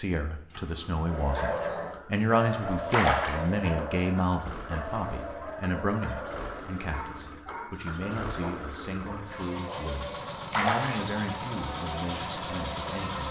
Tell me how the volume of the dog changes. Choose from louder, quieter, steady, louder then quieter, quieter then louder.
quieter.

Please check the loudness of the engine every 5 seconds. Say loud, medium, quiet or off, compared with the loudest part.
medium, medium, loud.